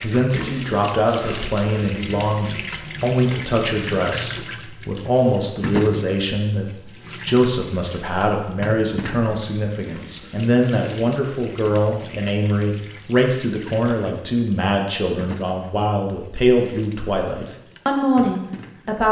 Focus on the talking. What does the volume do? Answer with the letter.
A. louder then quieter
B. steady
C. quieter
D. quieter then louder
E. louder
B.